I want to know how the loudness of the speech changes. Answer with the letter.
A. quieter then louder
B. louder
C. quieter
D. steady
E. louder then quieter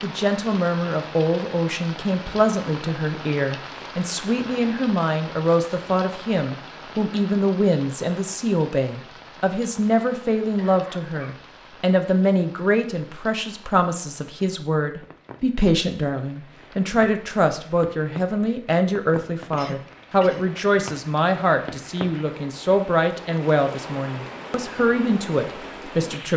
D.